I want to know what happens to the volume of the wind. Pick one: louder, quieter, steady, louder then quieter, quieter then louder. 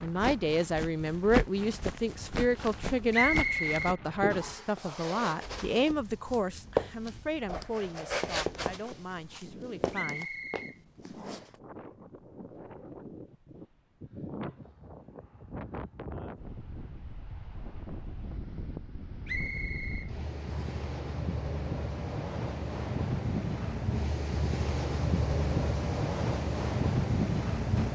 louder.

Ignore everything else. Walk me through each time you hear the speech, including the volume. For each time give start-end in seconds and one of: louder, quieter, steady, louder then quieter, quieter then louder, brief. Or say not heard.
0.0-10.3 quieter.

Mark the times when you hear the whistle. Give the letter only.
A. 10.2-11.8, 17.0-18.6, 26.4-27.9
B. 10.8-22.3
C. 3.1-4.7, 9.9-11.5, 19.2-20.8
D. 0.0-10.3
C.